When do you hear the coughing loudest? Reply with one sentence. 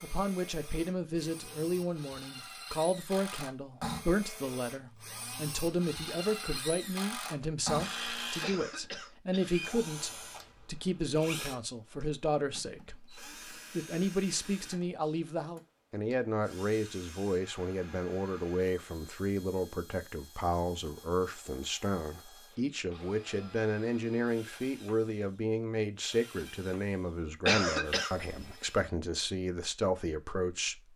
The volume of the coughing peaks at 28 seconds.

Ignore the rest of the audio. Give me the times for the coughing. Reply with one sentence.
You can hear the coughing from 8.4 to 9.5 s and from 27.4 to 28.1 s.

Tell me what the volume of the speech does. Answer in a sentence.
The loudness of the speech stays about the same.